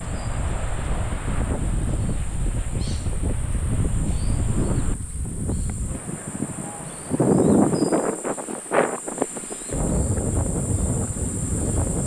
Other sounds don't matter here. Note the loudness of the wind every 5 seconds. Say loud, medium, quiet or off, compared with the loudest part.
medium, loud, loud.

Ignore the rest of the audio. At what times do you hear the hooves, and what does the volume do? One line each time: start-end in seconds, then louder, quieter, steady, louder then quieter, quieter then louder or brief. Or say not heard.
not heard.